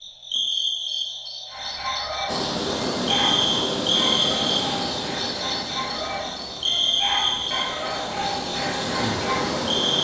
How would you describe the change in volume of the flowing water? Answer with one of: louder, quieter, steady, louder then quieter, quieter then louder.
quieter then louder.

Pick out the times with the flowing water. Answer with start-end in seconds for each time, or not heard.
2.2-9.9.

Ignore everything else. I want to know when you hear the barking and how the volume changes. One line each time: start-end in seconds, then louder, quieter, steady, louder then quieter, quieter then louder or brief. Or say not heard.
1.5-9.7 steady.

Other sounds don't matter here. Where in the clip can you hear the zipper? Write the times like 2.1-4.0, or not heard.
not heard.